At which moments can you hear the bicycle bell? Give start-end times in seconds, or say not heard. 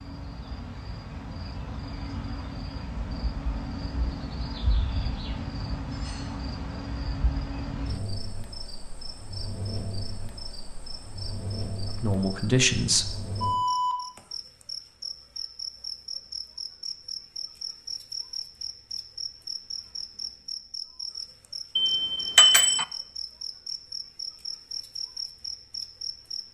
21.8-22.9.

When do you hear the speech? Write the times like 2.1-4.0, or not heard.
11.8-13.2.